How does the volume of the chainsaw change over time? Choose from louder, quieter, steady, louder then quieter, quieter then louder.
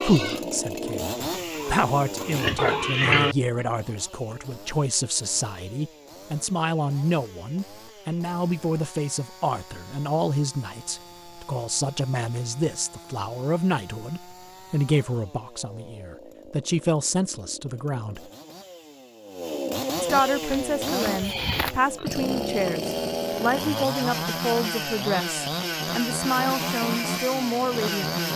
quieter then louder.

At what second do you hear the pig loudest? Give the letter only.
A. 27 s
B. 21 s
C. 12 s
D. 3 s
D.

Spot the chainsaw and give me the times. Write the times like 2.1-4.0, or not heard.
0.0-28.3.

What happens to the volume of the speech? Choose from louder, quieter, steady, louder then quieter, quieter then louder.
steady.